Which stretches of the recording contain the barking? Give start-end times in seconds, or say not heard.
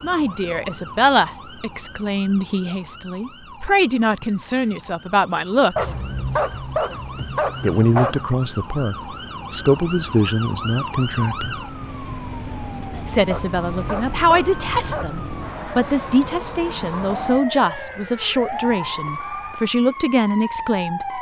5.8-8.3, 13.3-15.3.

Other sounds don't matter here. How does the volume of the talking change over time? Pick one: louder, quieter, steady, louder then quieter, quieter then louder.
steady.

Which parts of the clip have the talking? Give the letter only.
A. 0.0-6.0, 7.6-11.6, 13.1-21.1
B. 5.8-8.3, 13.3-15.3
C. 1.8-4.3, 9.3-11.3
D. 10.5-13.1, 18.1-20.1
A.